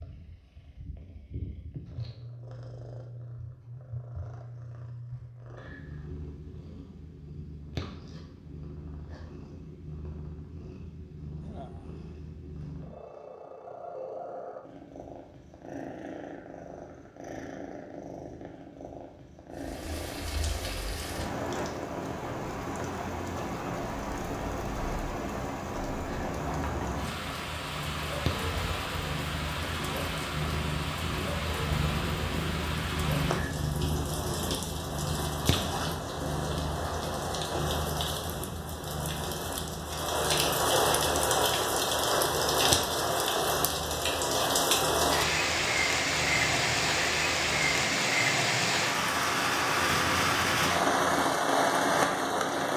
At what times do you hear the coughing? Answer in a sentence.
You can't hear the coughing here.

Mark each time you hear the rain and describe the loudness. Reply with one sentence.
The rain can be heard from 19.5 to 52.7 s, getting louder.